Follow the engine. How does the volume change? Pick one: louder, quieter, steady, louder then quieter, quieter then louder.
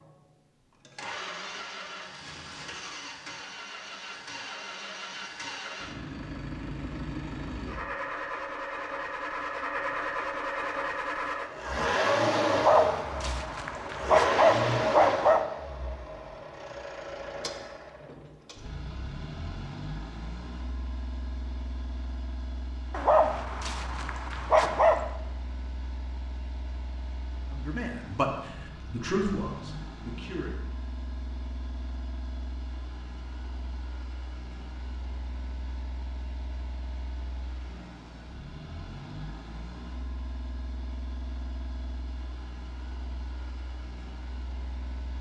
louder then quieter.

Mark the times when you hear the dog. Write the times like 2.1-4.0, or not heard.
12.5-15.4, 22.9-25.1.